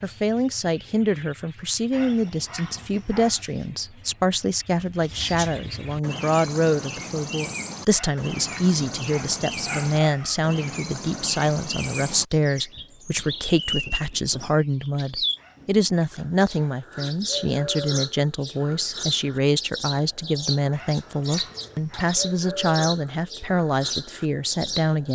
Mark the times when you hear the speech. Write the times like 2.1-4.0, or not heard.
0.0-25.1.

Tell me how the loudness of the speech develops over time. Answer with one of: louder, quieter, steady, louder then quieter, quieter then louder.
steady.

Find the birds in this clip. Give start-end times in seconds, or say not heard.
0.0-25.1.